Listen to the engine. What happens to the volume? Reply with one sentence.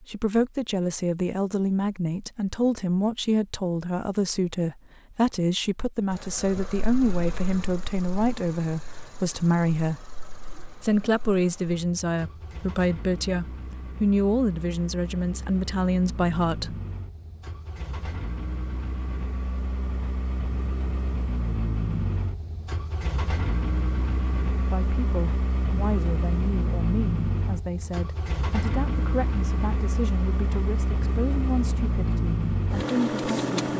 The loudness of the engine goes up.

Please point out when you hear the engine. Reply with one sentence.
The engine can be heard from 6.1 to 33.7 s.